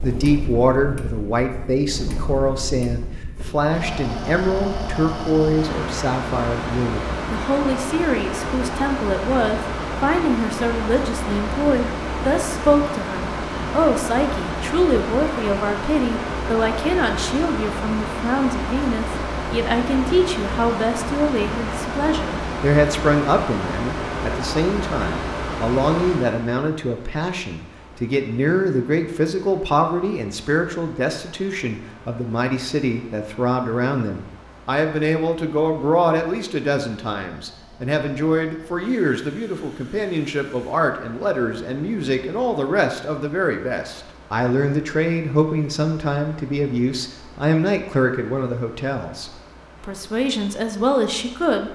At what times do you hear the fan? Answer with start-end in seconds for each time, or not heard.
0.0-51.7.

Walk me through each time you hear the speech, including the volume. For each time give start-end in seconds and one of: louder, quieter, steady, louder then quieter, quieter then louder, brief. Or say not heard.
0.0-51.7 steady.